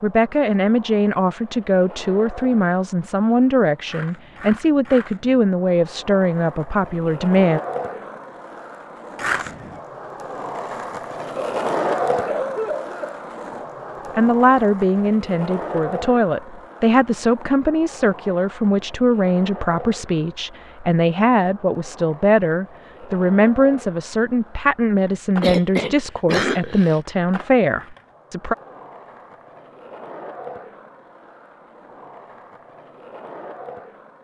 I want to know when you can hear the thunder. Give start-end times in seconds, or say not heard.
not heard.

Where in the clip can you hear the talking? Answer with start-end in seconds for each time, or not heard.
0.0-7.6, 14.2-28.6.